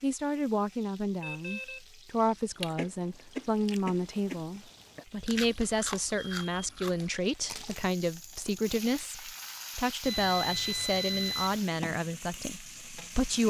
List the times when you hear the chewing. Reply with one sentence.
You can hear the chewing from 2.5 to 7.8 s.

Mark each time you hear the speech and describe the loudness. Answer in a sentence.
The speech can be heard from 0.0 to 13.4 s, at a steady volume.